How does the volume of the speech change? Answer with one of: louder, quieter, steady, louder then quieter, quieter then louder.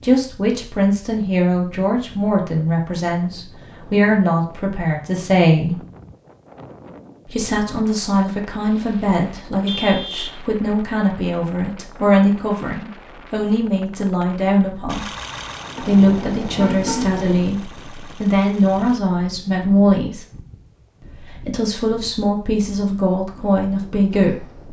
steady.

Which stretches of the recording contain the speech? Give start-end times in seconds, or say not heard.
0.0-5.8, 7.2-15.1, 15.8-20.2, 21.1-24.6.